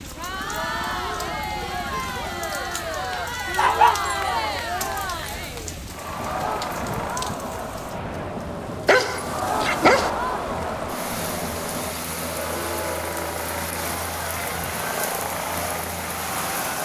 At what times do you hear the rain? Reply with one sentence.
You can hear the rain from 0.0 to 16.8 s.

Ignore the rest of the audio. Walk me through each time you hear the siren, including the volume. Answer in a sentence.
The siren can't be heard in this clip.